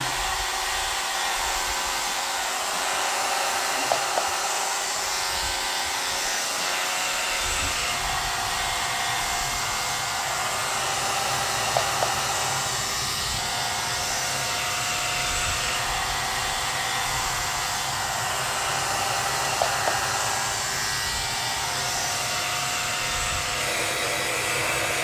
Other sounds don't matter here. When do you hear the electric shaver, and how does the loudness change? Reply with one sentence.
You can hear the electric shaver from 0.0 to 24.9 s, at a steady volume.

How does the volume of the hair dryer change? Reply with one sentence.
The loudness of the hair dryer stays about the same.